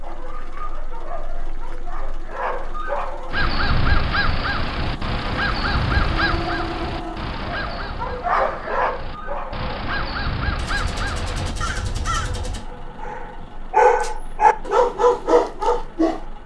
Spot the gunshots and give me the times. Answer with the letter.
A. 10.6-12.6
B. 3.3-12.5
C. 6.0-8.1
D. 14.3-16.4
A.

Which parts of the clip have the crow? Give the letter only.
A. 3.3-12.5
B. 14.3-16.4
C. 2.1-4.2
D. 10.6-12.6
A.